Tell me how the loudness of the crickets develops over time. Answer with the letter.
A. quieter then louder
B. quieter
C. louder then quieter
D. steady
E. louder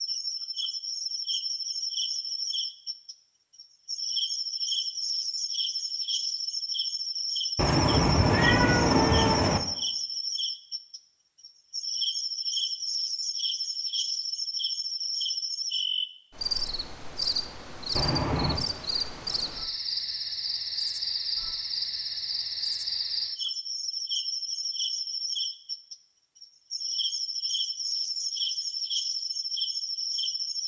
D.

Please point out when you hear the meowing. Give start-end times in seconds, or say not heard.
7.5-9.6, 17.9-18.6.